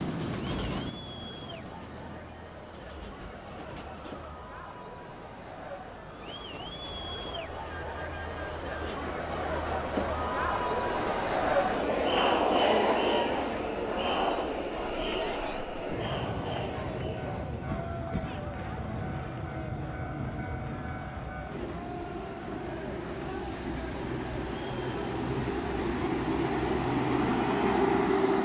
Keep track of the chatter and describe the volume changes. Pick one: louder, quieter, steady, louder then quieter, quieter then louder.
louder then quieter.